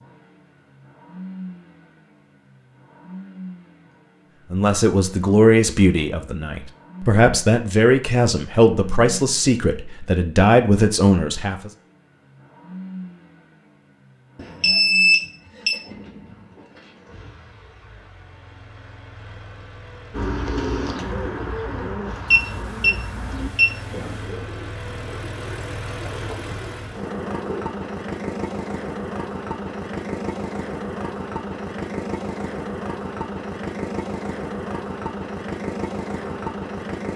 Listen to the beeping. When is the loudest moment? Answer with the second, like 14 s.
15 s.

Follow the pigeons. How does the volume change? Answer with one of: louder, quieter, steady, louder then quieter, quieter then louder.
quieter.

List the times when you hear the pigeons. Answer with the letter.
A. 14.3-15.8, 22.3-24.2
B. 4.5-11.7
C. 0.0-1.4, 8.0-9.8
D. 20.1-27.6
D.